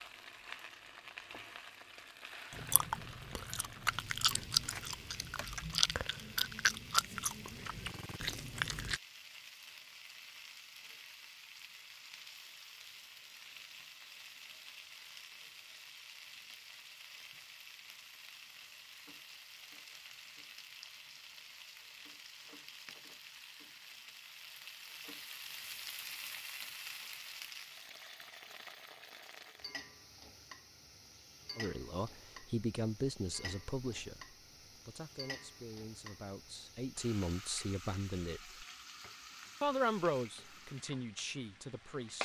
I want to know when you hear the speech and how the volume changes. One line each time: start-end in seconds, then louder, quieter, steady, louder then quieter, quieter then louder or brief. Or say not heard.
31.6-38.5 quieter then louder
39.6-42.2 brief.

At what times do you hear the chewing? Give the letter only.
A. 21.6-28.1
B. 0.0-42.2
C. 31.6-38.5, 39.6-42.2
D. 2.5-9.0
D.